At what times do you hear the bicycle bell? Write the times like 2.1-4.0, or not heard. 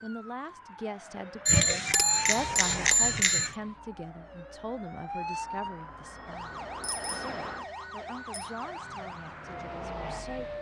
1.4-3.5, 6.0-8.5.